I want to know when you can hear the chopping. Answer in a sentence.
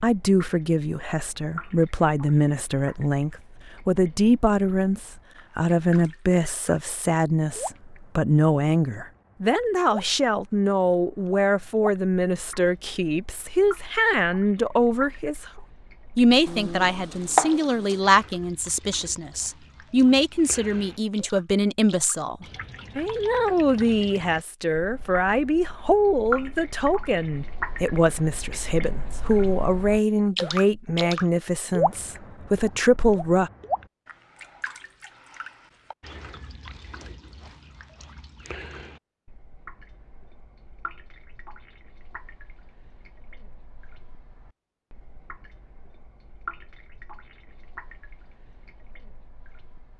You can hear the chopping from 16.4 to 18.0 s.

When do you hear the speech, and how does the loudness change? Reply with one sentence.
You can hear the speech from 0.0 to 33.5 s, at a steady volume.